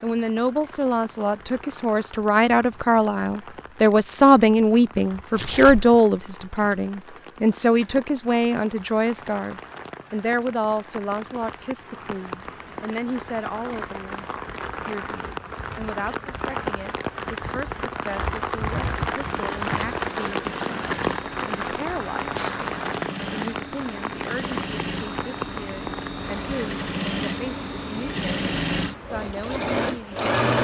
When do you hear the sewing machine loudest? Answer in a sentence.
The volume of the sewing machine peaks at 30 seconds.